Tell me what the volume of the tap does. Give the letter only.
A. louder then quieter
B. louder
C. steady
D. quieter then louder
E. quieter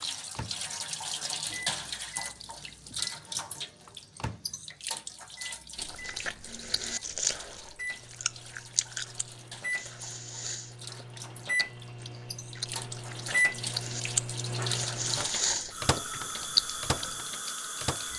D.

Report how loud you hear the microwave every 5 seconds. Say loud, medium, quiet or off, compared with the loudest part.
quiet, medium, loud, loud.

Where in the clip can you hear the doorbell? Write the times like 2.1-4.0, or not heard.
not heard.